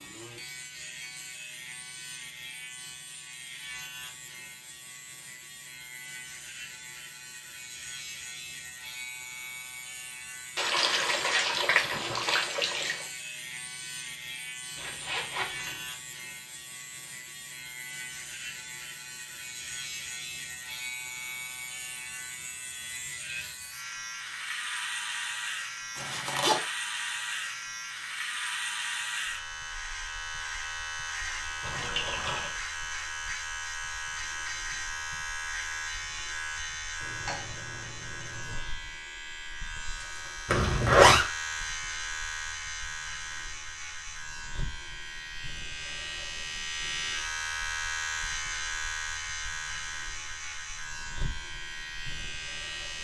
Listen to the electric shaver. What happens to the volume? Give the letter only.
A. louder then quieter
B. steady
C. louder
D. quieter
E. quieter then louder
C.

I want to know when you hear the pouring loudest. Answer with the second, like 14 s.
12 s.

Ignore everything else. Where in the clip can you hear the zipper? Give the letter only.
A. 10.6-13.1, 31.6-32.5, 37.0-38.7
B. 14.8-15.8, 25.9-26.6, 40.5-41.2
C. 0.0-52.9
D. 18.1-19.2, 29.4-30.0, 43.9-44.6
B.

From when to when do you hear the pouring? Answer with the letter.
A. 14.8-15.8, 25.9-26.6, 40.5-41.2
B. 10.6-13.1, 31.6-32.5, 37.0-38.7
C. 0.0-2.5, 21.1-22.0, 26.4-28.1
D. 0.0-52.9
B.